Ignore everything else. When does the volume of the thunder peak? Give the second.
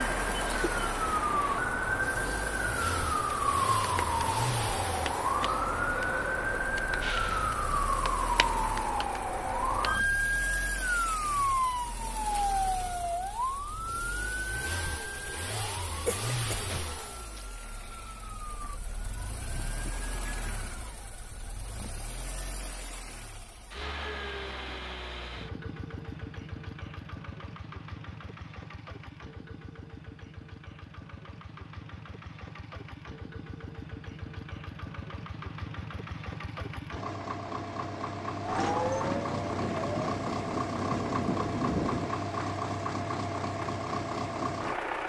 42 s.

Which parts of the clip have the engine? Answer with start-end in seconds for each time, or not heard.
0.0-45.0.